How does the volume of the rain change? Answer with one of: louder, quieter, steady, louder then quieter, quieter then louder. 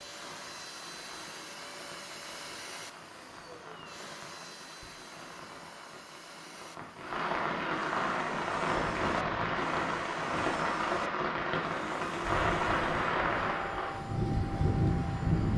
louder.